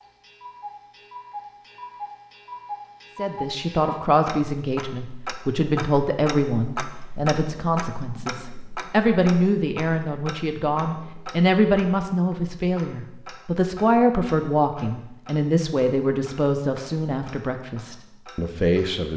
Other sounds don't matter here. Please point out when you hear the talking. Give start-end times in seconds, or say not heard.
3.1-19.1.